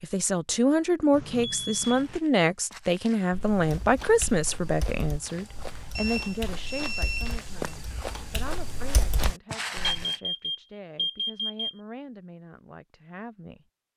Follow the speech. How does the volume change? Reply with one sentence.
The volume of the speech goes down.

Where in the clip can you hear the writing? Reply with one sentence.
You can't hear the writing here.